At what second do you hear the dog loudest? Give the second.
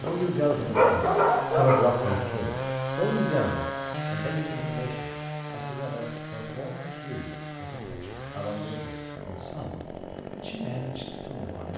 1 s.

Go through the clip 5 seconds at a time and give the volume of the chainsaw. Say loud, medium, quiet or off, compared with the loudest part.
loud, medium, medium.